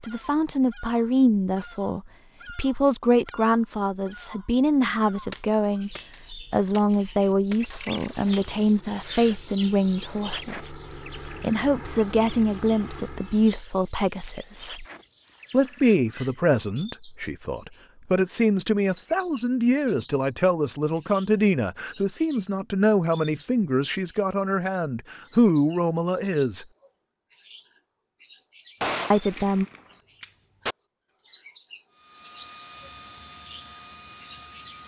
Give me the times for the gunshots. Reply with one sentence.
The gunshots can be heard from 5.3 to 8.4 s and from 28.8 to 30.8 s.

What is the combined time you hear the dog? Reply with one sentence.
The dog can't be heard in this clip.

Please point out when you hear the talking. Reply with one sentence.
The talking can be heard from 0.0 to 14.8 s, from 15.5 to 26.6 s and from 29.1 to 29.6 s.